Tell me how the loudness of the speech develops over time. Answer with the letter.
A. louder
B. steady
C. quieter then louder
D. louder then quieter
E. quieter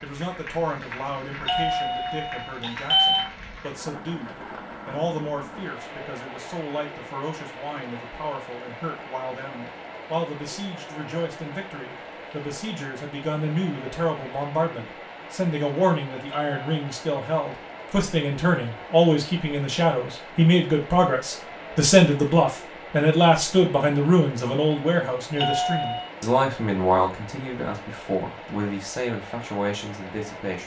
D.